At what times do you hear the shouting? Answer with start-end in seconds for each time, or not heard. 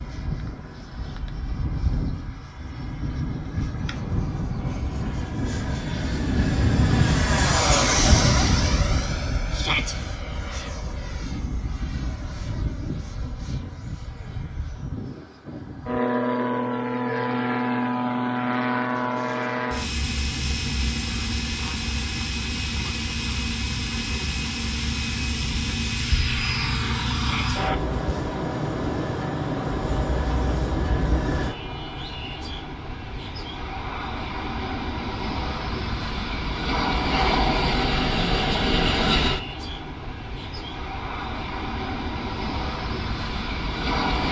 9.5-9.9, 27.1-27.6.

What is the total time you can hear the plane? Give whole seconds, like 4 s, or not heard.
44 s.